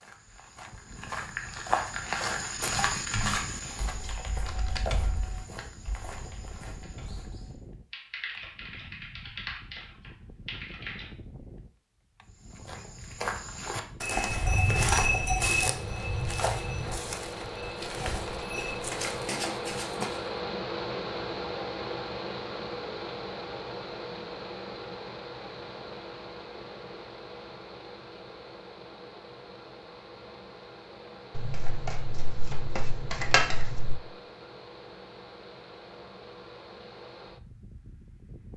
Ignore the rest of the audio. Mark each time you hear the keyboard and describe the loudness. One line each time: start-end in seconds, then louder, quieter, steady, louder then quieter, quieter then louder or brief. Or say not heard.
2.6-11.1 quieter then louder.